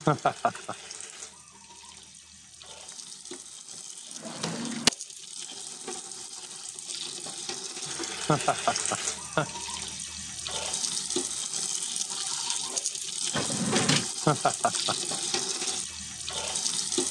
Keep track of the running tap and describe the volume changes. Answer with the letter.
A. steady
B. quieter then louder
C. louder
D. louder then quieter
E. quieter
C.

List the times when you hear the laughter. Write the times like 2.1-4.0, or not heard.
0.1-0.8, 8.2-9.5, 14.2-14.9.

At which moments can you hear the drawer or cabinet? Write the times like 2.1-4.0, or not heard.
4.2-4.9, 13.3-14.1.